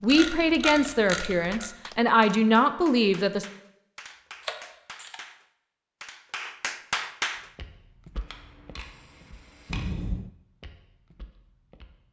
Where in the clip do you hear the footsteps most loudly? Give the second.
8 s.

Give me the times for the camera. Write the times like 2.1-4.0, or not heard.
0.1-1.7, 4.4-5.2, 8.2-9.9.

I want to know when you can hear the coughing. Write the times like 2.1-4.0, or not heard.
9.7-10.3.